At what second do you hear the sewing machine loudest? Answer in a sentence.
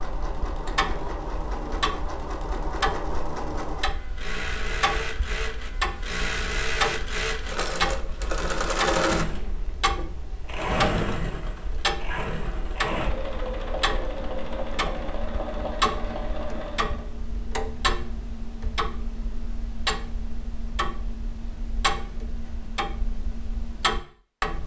The loudest moment of the sewing machine is at 9 seconds.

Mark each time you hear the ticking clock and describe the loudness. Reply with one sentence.
The ticking clock can be heard from 0.0 to 24.6 s, at a steady volume.